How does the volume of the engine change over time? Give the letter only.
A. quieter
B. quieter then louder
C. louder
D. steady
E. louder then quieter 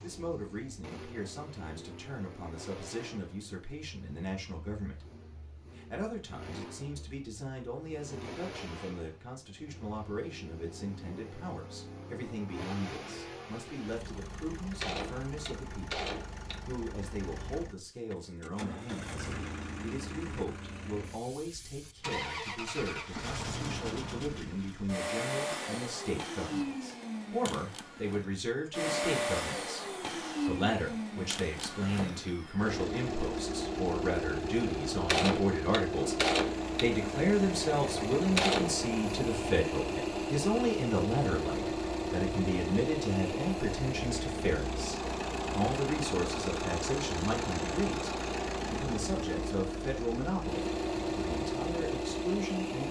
C.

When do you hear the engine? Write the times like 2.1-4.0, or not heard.
0.0-52.8.